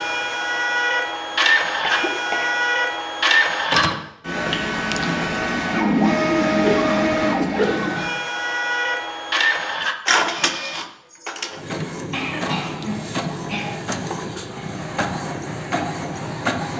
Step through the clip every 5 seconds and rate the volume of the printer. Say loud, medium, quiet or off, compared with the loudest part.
loud, loud, medium, medium.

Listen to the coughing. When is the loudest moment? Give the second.
7 s.